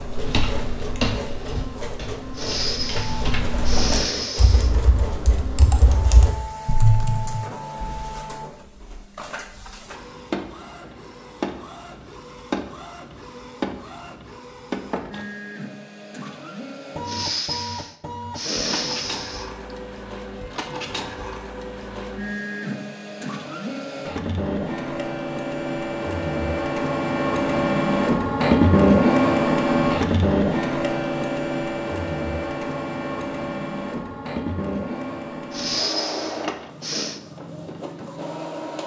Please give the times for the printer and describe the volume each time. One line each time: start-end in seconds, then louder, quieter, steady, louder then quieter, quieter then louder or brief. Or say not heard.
0.0-38.8 louder then quieter.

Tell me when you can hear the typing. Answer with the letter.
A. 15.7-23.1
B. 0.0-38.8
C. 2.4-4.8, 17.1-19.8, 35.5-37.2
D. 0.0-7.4
D.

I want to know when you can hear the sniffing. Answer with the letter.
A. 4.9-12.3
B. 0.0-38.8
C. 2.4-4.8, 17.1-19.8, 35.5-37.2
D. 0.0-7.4
C.